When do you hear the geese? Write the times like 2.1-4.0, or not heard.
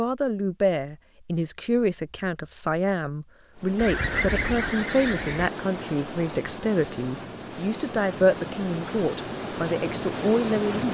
3.8-5.5.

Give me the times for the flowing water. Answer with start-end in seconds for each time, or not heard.
3.5-10.8.